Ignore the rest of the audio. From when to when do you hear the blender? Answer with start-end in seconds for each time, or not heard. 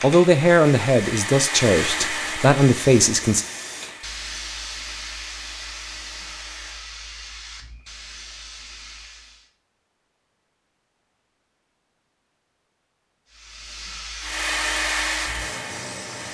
0.1-6.9, 14.2-16.3.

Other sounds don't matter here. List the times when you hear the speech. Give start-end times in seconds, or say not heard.
0.0-3.5.